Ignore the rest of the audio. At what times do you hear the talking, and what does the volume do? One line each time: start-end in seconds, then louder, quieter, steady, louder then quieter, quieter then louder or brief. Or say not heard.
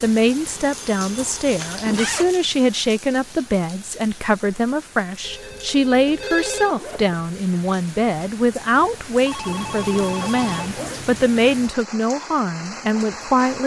0.0-13.6 steady.